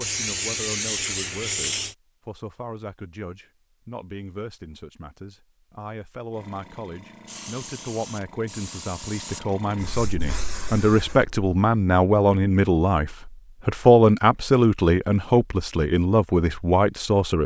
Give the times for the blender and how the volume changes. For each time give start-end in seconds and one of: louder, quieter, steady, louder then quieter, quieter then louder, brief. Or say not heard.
not heard.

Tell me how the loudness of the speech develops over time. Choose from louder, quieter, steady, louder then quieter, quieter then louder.
louder.